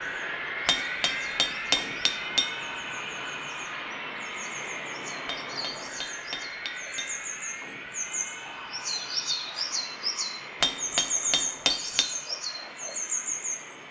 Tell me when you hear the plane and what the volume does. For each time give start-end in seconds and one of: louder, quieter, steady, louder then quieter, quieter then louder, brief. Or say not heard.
0.0-13.8 quieter.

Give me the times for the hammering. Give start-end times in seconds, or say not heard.
0.7-2.5, 5.2-7.1, 10.6-12.1.